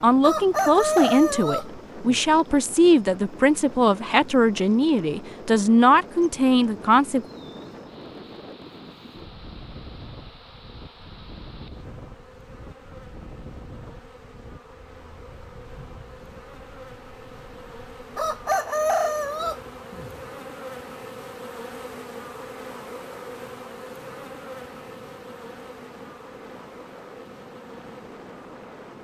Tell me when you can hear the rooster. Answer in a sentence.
The rooster can be heard from 0.2 to 2.2 s and from 18.1 to 20.1 s.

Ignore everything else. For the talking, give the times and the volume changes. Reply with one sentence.
The talking can be heard from 0.0 to 7.2 s, at a steady volume.